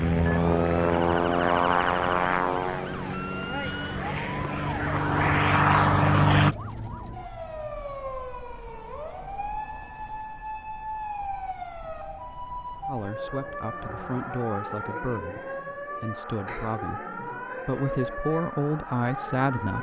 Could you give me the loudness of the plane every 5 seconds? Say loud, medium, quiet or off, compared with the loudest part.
medium, loud, off, off.